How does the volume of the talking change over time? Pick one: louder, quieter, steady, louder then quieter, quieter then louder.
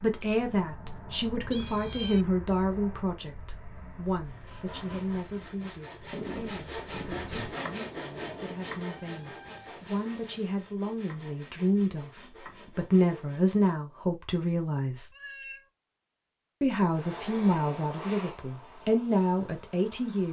quieter then louder.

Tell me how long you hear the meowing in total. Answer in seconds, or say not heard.
3 s.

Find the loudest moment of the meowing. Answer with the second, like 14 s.
2 s.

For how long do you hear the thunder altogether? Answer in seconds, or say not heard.
3 s.